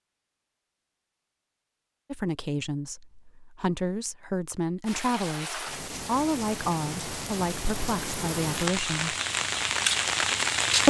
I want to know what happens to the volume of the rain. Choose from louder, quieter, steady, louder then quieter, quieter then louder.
louder.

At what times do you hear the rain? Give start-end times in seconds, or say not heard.
4.8-10.8.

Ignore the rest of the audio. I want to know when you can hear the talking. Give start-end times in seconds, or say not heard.
2.1-9.2.